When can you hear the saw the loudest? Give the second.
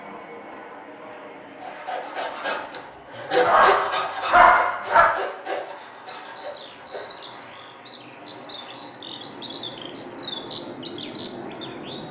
4 s.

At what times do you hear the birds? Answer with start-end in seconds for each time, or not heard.
6.2-12.0.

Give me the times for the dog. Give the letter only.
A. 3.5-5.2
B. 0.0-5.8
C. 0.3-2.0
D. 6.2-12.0
A.